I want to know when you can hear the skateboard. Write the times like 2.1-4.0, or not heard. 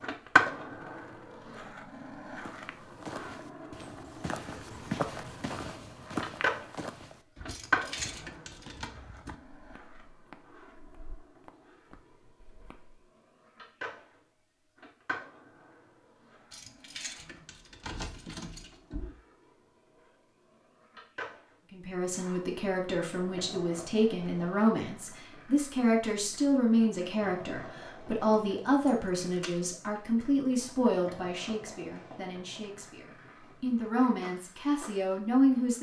0.0-35.7.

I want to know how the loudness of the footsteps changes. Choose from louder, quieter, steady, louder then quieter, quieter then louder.
louder then quieter.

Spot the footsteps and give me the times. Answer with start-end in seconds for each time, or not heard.
2.4-13.1.